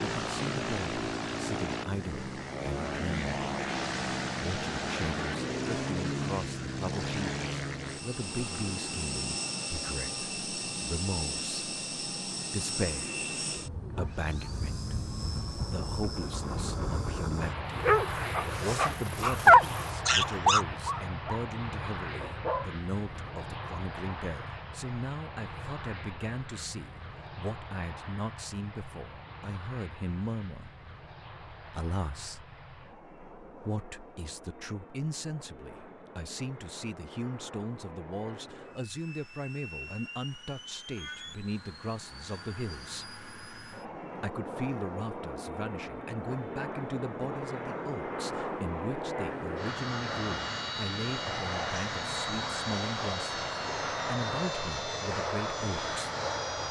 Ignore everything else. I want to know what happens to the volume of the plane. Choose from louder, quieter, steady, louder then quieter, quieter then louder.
quieter then louder.